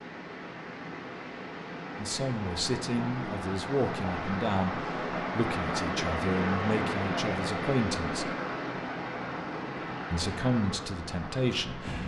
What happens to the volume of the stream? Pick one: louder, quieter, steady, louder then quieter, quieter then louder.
louder then quieter.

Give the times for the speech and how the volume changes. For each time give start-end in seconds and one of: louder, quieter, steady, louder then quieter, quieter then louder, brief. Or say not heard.
1.9-8.3 steady
10.1-12.0 brief.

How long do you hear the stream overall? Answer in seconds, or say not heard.
12 s.